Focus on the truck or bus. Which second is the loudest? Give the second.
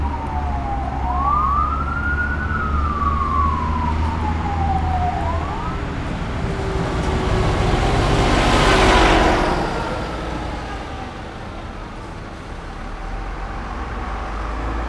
9 s.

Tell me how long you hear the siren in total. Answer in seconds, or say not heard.
6 s.